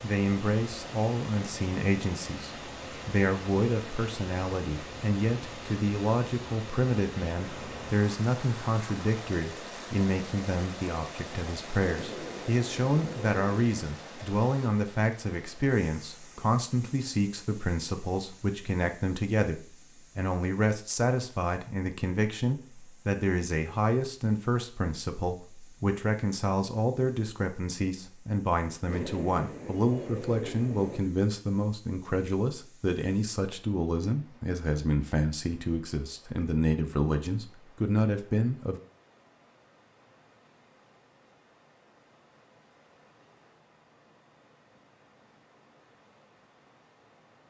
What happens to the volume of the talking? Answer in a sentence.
The loudness of the talking stays about the same.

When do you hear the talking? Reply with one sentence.
The talking can be heard from 0.0 to 38.8 s.